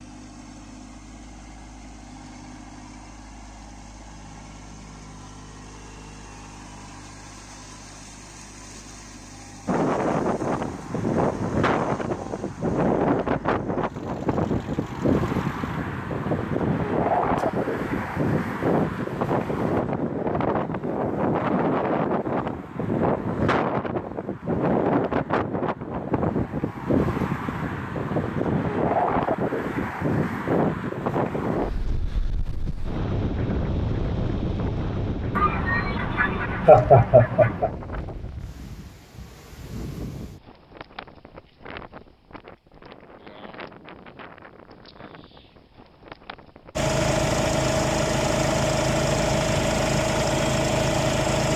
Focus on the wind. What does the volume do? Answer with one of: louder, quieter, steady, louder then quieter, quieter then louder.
quieter.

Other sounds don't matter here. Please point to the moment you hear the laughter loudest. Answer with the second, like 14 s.
37 s.